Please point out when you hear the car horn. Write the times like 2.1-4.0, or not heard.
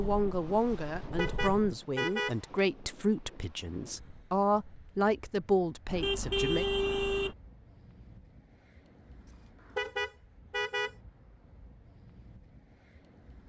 1.1-2.4, 5.9-7.3, 9.8-10.9.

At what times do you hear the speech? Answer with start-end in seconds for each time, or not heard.
0.0-6.7.